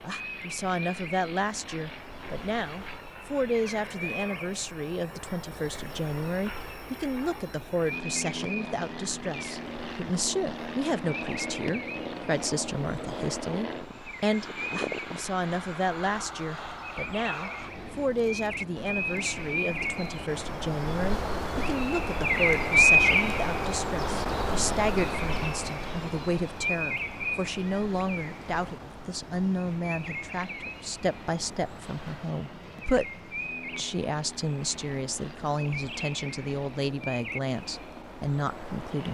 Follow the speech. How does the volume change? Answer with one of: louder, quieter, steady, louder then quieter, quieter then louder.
steady.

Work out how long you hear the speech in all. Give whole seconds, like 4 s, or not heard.
38 s.